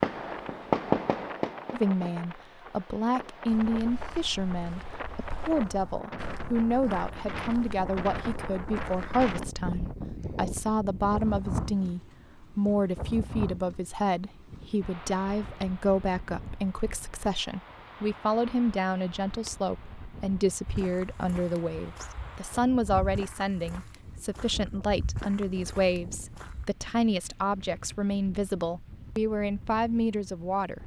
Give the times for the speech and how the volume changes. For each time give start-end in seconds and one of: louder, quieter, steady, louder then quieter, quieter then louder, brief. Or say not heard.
1.7-30.8 steady.